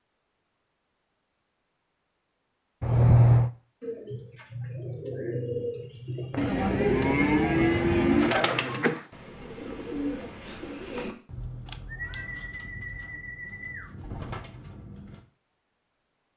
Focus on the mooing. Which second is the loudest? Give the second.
8 s.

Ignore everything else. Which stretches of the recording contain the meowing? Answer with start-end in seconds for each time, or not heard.
2.8-3.5, 8.6-9.0, 11.7-12.2.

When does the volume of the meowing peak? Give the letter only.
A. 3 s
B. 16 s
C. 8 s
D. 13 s
A.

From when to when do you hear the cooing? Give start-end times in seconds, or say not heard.
3.8-15.2.